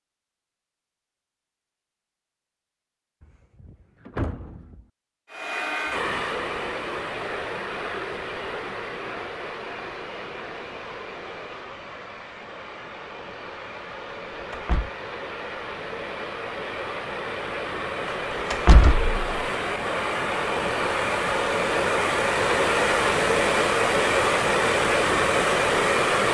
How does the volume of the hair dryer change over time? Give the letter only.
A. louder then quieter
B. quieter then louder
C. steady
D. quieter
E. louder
B.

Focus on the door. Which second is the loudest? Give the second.
19 s.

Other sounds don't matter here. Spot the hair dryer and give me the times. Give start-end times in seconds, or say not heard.
5.2-26.2.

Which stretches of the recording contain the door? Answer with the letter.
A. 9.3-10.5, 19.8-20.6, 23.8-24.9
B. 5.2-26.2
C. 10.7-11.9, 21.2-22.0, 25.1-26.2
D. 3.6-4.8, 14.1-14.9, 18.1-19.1
D.